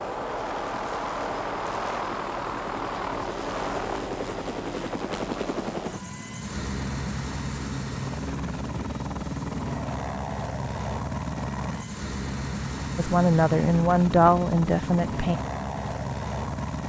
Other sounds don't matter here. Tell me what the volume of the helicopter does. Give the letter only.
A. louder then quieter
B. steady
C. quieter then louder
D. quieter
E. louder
B.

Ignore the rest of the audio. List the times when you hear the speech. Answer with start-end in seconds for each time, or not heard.
12.9-15.4.